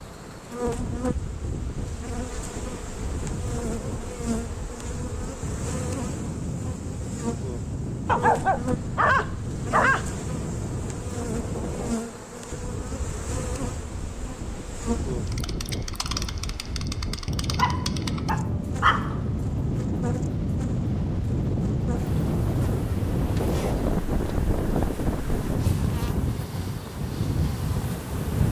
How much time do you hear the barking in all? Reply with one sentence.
You can hear the barking for 4 seconds altogether.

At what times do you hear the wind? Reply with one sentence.
You can hear the wind from 0.0 to 28.4 s.